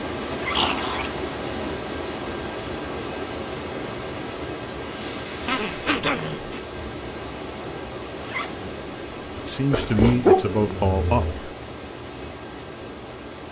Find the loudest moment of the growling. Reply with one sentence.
The loudest moment of the growling is at 10 seconds.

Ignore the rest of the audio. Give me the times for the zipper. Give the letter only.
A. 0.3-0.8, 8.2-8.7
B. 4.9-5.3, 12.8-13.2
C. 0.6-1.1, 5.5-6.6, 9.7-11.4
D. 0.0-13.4
A.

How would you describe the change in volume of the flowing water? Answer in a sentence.
The loudness of the flowing water goes down.